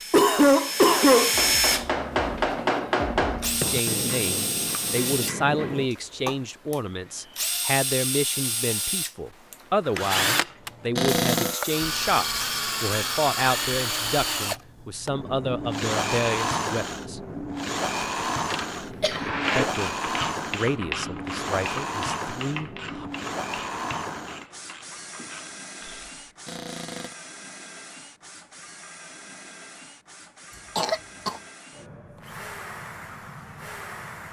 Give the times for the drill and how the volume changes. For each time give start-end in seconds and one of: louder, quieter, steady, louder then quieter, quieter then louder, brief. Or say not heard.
0.0-34.2 quieter.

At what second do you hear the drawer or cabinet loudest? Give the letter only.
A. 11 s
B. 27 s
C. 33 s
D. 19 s
A.